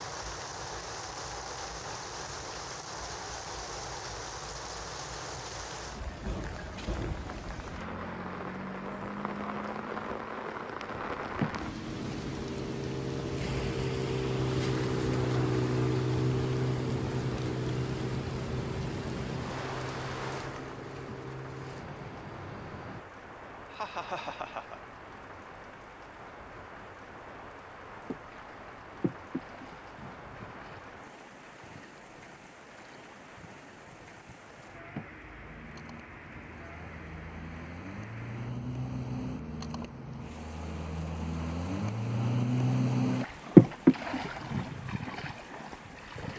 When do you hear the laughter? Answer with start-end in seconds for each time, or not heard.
23.7-24.8.